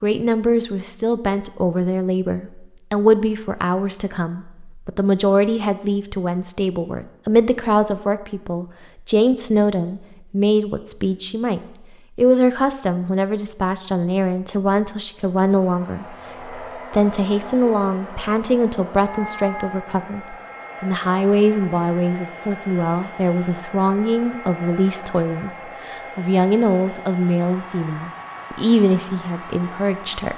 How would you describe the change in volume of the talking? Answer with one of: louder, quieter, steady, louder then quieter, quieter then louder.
steady.